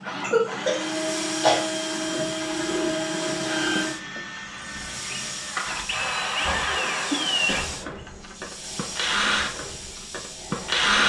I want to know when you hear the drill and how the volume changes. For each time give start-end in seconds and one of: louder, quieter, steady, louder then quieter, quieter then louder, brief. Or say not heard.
0.0-11.0 steady.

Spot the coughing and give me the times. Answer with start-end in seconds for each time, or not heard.
0.2-1.6, 6.7-7.7.